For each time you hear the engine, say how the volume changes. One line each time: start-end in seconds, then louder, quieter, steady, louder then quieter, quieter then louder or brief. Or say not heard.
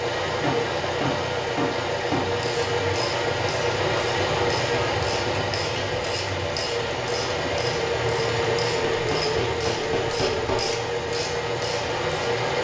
0.0-12.5 steady.